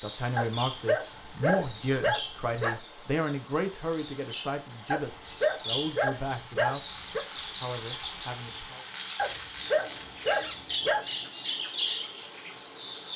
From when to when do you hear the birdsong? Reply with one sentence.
You can hear the birdsong from 0.0 to 13.1 s.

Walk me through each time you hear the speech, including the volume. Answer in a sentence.
The speech can be heard from 0.0 to 8.8 s, getting quieter.